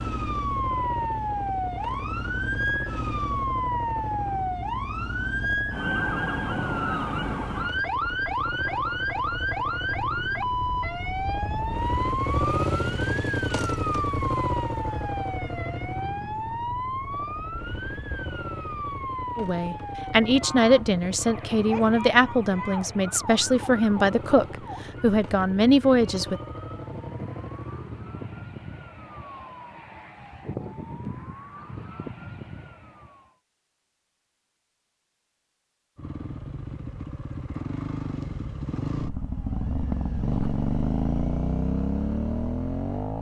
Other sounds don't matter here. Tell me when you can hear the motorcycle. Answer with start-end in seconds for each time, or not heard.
0.0-28.4, 36.0-43.1.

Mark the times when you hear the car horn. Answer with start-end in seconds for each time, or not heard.
not heard.